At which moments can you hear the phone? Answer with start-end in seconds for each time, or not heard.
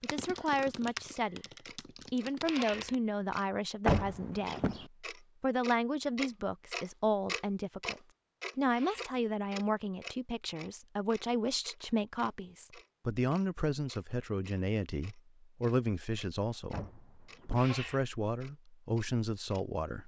not heard.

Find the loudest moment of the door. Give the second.
4 s.